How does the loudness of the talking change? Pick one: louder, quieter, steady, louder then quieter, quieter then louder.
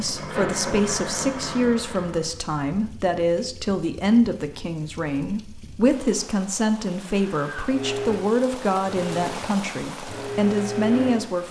steady.